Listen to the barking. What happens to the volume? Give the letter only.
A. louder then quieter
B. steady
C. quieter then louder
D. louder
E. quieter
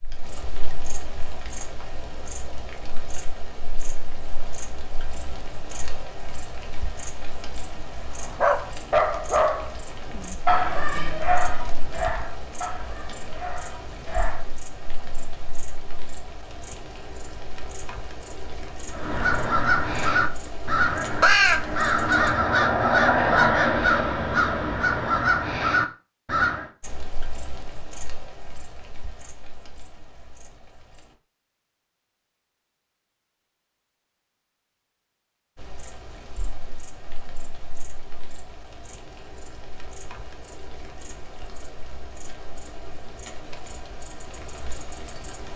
E.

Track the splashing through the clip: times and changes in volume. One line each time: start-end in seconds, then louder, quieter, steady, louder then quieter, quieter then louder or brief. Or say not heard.
not heard.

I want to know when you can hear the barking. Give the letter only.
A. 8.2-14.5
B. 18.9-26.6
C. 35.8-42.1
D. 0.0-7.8
A.